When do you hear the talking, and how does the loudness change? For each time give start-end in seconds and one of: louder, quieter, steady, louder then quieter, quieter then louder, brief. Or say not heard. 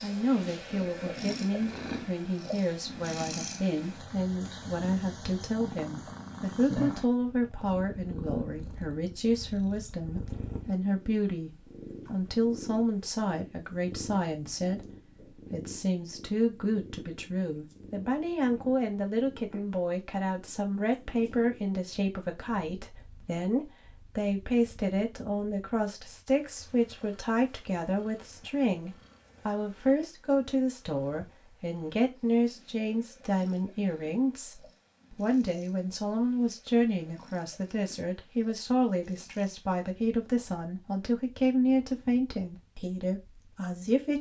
0.0-44.1 steady.